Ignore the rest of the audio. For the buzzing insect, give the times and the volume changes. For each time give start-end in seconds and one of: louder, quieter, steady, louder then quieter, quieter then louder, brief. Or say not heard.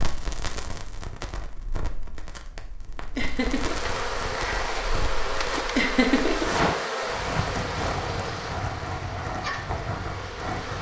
3.4-10.7 quieter.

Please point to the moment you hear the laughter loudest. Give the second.
6 s.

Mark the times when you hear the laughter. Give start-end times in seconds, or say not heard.
3.1-3.8, 5.8-6.5.